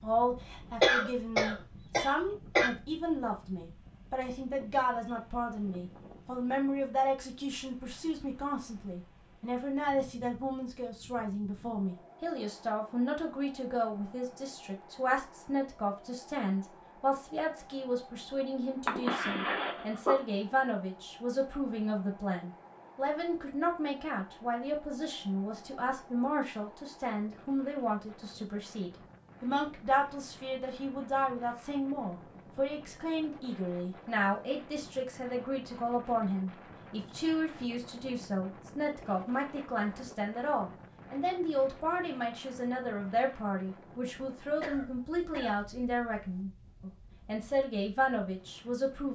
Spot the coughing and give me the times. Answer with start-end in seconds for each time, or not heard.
0.8-2.7, 18.9-20.1, 44.6-46.4.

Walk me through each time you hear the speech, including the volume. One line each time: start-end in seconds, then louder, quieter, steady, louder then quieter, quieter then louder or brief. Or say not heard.
0.0-49.1 steady.